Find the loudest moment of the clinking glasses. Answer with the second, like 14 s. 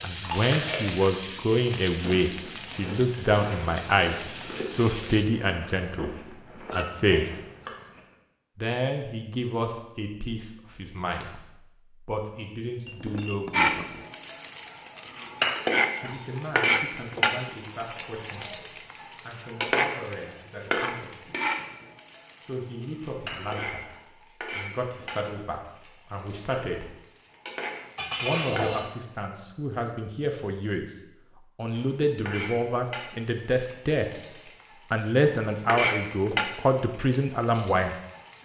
28 s.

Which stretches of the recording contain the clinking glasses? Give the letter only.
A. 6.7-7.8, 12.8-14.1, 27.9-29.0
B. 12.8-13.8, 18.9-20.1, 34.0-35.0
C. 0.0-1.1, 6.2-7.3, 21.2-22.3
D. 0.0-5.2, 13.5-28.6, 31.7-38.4
A.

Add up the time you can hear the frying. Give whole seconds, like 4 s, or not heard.
27 s.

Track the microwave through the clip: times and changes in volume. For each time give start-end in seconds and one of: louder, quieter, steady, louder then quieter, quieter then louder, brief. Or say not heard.
not heard.